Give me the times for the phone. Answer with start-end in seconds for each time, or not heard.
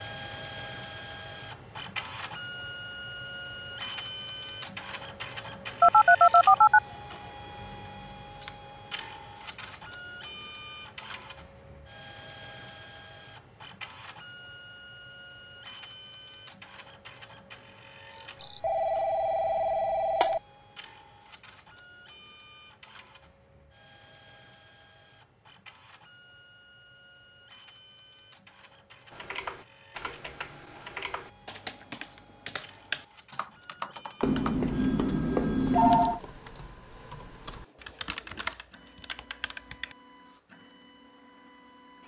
5.8-6.8, 18.4-20.4, 34.2-36.2.